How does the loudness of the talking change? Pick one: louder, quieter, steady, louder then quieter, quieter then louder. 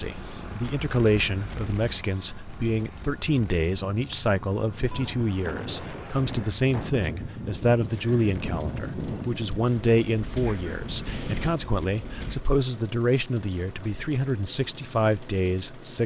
steady.